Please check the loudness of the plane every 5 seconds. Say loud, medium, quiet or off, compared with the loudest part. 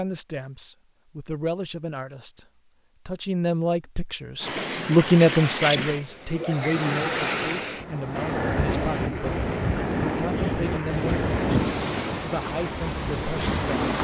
off, loud, loud.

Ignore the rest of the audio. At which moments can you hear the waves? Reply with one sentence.
The waves can be heard from 4.4 to 13.9 s.